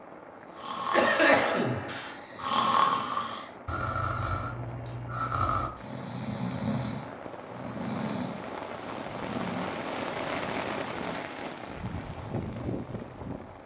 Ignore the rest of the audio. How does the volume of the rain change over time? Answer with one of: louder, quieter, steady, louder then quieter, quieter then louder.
louder.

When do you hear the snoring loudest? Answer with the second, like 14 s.
3 s.